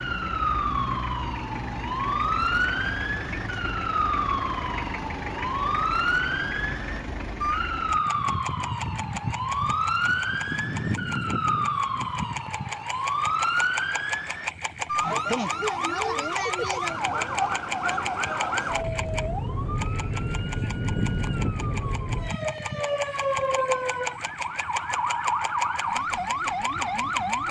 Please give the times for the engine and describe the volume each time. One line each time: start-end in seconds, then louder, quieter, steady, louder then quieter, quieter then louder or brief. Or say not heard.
0.0-27.4 steady.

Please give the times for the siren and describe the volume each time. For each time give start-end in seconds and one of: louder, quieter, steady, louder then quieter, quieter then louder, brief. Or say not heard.
0.0-27.4 steady.